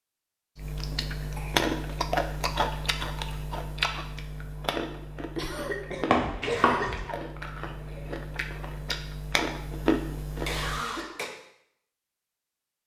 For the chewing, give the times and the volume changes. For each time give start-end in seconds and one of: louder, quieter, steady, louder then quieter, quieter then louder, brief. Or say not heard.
0.6-10.8 quieter then louder.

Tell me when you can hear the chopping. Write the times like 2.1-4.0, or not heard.
6.1-7.0.